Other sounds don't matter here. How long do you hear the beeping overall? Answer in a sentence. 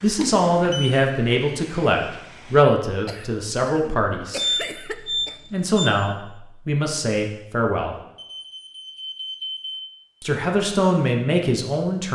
The beeping can be heard for 4 seconds in total.